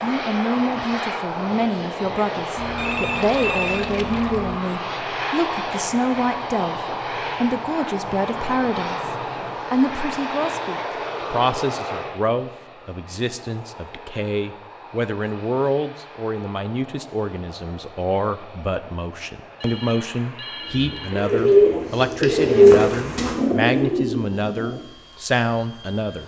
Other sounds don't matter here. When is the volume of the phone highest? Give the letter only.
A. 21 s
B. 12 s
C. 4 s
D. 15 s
C.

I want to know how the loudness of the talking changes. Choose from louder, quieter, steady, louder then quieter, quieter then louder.
steady.